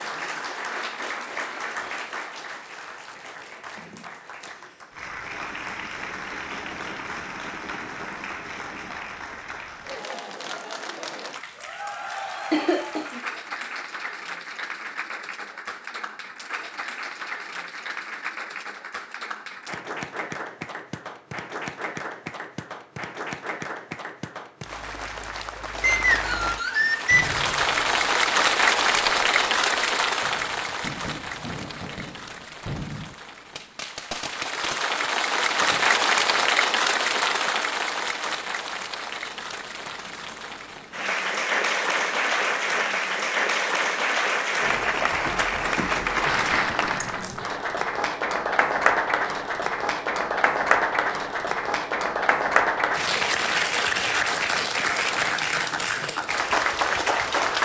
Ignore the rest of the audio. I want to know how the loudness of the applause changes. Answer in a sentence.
The loudness of the applause goes up.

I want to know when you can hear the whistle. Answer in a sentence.
The whistle can be heard from 25.8 to 27.4 s.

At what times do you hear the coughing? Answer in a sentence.
You can hear the coughing from 12.5 to 13.2 s.